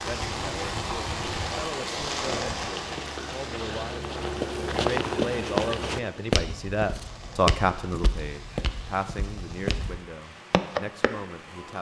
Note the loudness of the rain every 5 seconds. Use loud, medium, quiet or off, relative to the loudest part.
loud, quiet, quiet.